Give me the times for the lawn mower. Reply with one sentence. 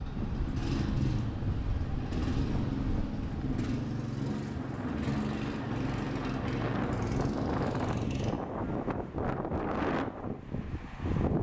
You can hear the lawn mower from 0.0 to 8.3 s.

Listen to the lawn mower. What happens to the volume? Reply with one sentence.
The volume of the lawn mower stays about the same.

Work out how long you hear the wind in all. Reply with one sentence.
You can hear the wind for 11 seconds altogether.